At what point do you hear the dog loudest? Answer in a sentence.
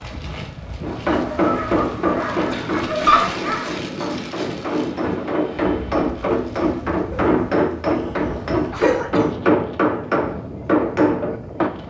The loudest moment of the dog is at 3 seconds.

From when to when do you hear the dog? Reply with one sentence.
The dog can be heard from 1.1 to 3.8 s and from 7.1 to 9.2 s.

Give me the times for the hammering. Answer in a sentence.
The hammering can be heard from 0.8 to 11.7 s.